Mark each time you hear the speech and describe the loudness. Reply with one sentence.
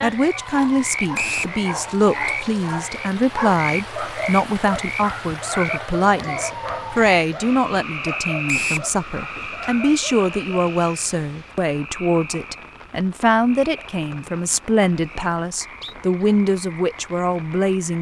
The speech can be heard from 0.0 to 17.9 s, at a steady volume.